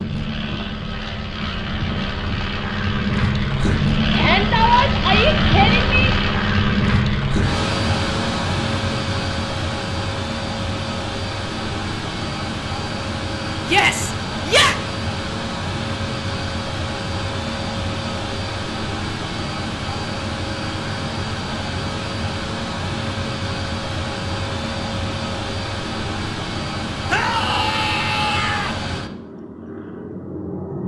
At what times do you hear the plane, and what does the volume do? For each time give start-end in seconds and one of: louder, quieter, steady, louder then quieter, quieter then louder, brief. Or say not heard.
0.0-30.8 quieter.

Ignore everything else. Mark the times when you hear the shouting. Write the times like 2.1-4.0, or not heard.
4.1-6.1, 13.7-14.8, 27.1-28.8.